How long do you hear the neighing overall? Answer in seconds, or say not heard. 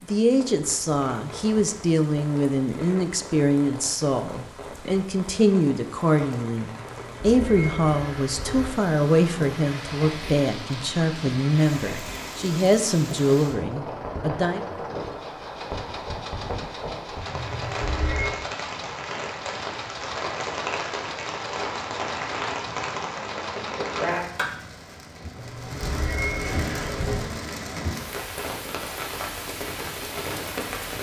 5 s.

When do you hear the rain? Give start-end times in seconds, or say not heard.
0.0-30.9.